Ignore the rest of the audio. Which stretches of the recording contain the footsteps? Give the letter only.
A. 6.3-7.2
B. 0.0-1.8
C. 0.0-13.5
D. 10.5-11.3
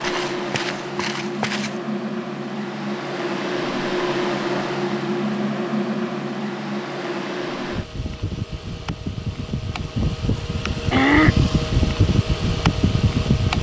B.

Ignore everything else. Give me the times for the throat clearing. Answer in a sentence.
The throat clearing can be heard from 10.5 to 11.3 s.